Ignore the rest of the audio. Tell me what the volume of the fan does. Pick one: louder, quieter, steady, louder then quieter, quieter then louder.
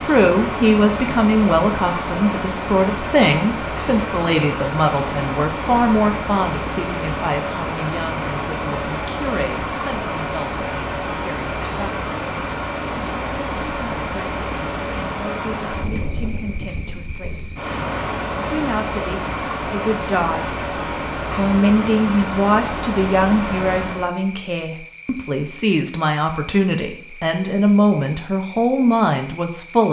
steady.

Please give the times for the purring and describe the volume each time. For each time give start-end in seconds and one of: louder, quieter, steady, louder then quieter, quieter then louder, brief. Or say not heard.
not heard.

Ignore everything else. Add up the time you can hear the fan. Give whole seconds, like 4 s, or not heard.
24 s.